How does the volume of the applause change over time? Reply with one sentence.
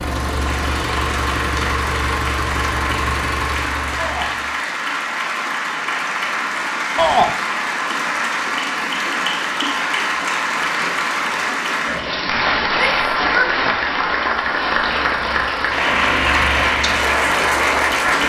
The loudness of the applause goes up.